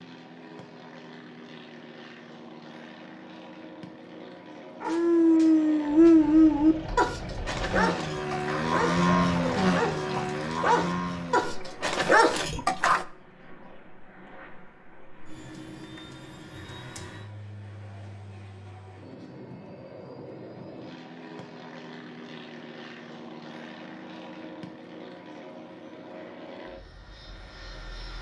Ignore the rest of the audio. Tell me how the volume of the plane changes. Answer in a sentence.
The loudness of the plane goes up, then down.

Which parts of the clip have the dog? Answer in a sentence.
The dog can be heard from 4.8 to 13.1 s.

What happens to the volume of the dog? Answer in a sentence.
The volume of the dog goes down, then up.